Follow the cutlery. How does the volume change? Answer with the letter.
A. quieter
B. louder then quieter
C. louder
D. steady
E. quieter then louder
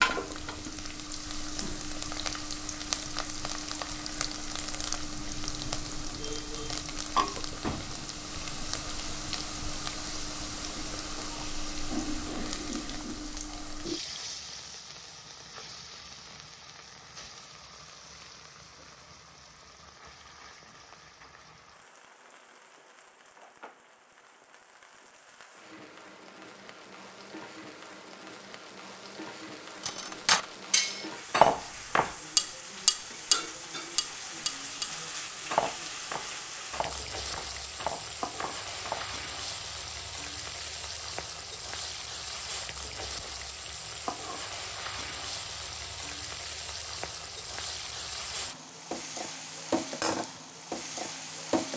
A.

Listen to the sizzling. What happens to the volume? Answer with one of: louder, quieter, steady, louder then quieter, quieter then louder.
quieter then louder.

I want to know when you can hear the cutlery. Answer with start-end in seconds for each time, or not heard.
29.8-39.0.